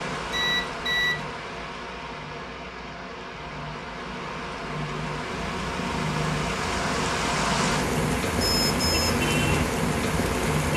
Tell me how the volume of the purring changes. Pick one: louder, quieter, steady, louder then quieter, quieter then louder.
louder.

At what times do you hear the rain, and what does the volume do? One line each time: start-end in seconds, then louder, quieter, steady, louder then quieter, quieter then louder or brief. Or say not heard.
0.0-10.7 louder.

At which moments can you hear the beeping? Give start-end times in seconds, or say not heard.
0.3-1.2, 8.3-9.2.